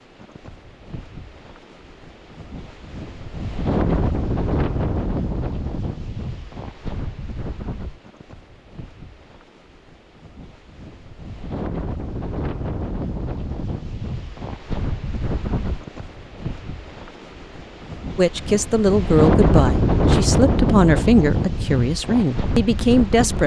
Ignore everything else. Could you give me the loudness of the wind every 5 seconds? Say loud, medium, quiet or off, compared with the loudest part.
medium, medium, medium, loud, loud.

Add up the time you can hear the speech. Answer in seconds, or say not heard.
5 s.